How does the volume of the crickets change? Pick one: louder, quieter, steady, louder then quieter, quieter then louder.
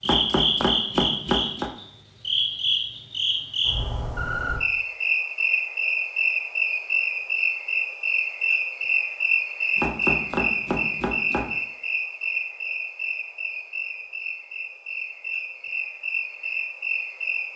quieter.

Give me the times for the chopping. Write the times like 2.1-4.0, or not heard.
0.1-1.7, 9.8-11.6.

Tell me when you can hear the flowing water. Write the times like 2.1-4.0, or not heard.
not heard.